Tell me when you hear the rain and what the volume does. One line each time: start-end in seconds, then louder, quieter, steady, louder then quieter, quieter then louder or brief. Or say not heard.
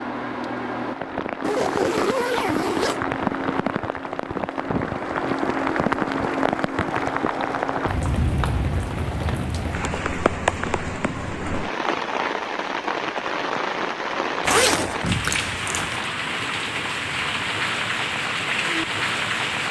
0.0-19.6 steady.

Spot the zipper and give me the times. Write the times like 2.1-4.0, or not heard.
1.4-3.0, 14.4-16.1.